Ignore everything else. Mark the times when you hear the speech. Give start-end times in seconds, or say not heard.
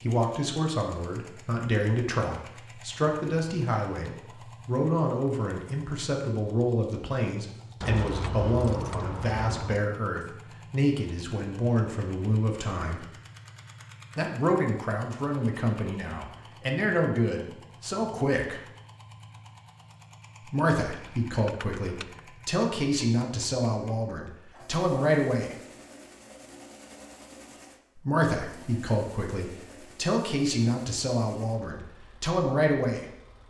0.0-13.1, 14.2-18.6, 20.4-25.6, 27.9-33.0.